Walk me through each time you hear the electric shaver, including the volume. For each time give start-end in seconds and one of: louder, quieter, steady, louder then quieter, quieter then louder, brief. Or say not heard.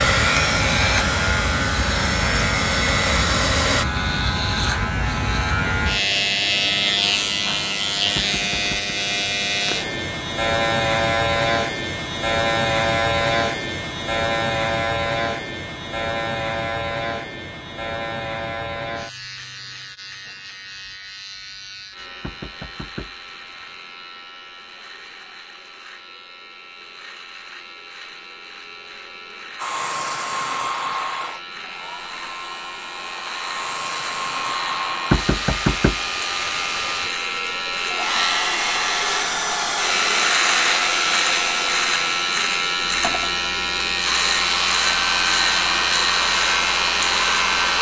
0.0-47.7 quieter then louder.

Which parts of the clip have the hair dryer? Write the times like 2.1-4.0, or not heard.
0.0-3.9, 29.6-47.7.